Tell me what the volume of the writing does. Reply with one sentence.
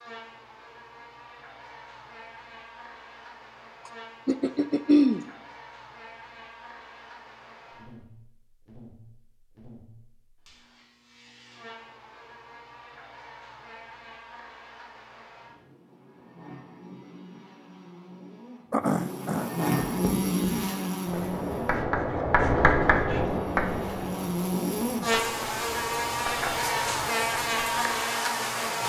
The volume of the writing goes down.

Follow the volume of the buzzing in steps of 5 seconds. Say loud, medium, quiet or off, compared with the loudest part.
quiet, quiet, quiet, medium, loud, loud.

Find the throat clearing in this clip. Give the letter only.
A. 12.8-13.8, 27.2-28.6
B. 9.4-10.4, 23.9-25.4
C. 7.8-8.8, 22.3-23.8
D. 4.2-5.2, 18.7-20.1
D.